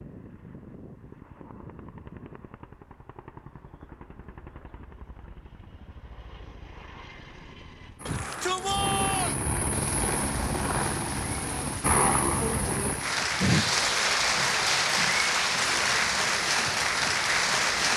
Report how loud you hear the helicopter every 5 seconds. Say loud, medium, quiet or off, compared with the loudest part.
quiet, medium, loud, quiet.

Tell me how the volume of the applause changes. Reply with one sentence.
The volume of the applause goes up.